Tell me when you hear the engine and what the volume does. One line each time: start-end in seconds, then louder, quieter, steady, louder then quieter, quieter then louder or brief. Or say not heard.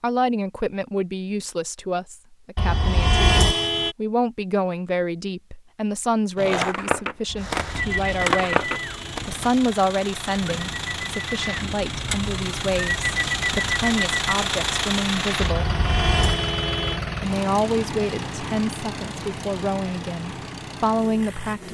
7.3-21.6 louder then quieter.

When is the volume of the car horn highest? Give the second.
3 s.